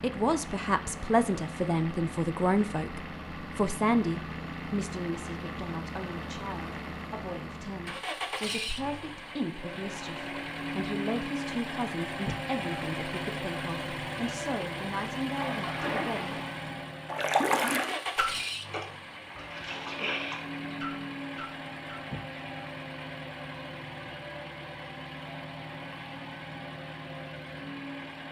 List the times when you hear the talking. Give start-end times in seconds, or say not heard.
0.0-16.4.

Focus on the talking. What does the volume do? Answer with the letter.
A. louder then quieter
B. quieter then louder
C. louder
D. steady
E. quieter
E.